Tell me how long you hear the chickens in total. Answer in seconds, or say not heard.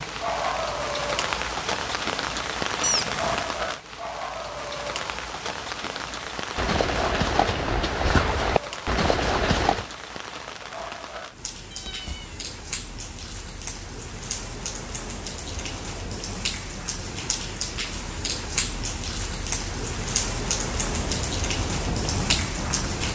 not heard.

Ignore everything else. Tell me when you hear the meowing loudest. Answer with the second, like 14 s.
3 s.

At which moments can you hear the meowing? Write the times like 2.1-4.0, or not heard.
2.8-3.5, 11.7-12.4.